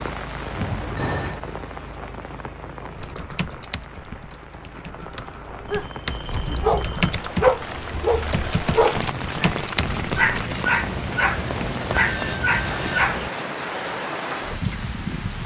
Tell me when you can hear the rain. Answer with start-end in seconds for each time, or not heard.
0.0-15.4.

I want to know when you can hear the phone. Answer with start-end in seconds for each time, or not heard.
0.5-1.4, 5.7-7.2, 11.9-13.2.